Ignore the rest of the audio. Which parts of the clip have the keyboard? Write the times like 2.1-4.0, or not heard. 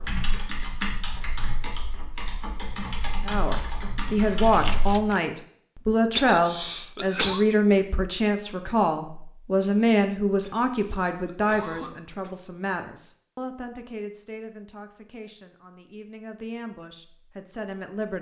0.0-5.0.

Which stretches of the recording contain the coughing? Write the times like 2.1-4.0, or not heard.
6.2-7.5, 10.4-12.3.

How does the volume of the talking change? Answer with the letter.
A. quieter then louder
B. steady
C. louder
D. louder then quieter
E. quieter
E.